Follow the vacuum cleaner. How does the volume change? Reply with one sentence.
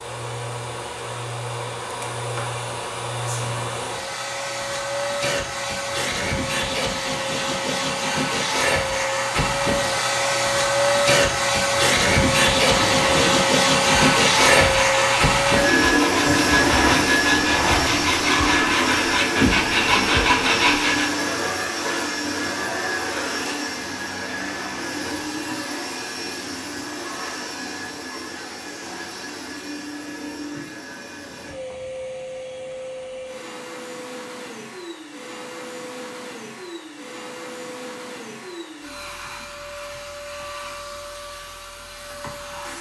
The volume of the vacuum cleaner goes up, then down.